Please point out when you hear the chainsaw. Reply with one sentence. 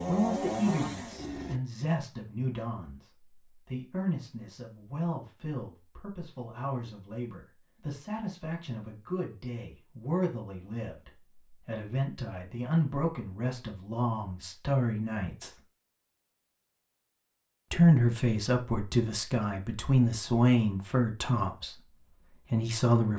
You can hear the chainsaw from 0.0 to 1.6 s.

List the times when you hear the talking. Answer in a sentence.
The talking can be heard from 0.1 to 15.6 s and from 17.7 to 23.1 s.